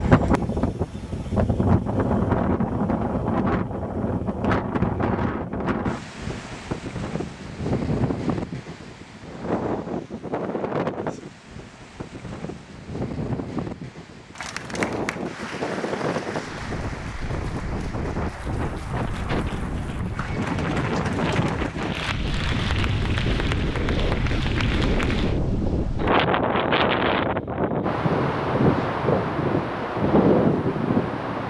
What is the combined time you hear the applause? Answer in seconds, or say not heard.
11 s.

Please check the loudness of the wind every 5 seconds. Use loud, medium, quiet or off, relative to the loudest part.
loud, medium, medium, medium, medium, loud, loud.